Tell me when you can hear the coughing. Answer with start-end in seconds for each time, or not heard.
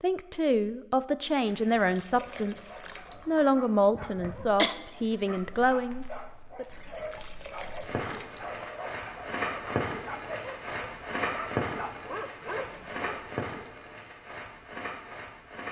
3.9-4.8.